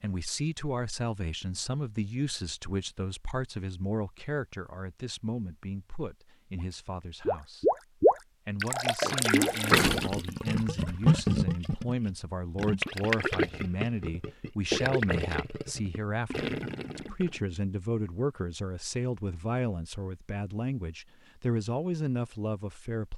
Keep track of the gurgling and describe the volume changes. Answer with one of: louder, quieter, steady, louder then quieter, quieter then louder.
quieter.